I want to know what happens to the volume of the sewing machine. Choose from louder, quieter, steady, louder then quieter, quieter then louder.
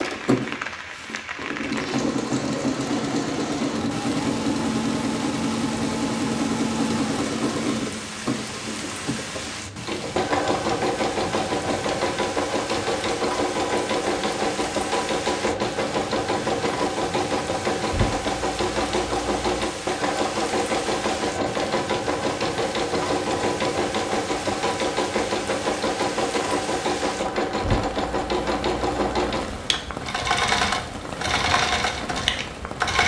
steady.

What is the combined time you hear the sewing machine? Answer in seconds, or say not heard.
33 s.